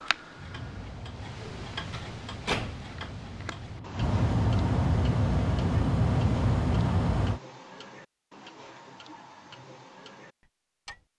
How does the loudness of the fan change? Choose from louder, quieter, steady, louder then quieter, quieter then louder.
louder.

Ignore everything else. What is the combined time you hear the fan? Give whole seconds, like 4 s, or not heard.
7 s.